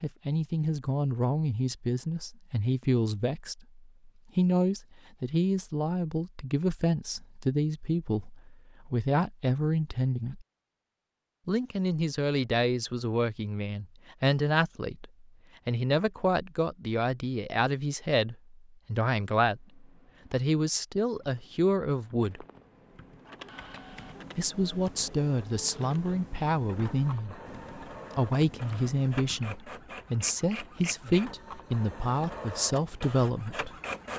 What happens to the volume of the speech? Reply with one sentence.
The volume of the speech stays about the same.